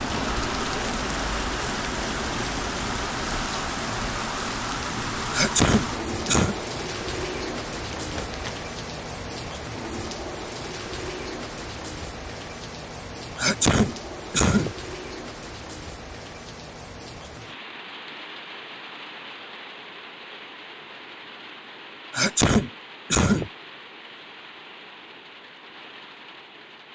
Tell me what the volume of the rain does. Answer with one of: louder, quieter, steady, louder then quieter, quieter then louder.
quieter.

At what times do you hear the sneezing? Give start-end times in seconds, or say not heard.
5.3-6.5, 13.3-14.8, 22.1-23.5.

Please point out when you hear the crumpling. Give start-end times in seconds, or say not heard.
8.0-8.7.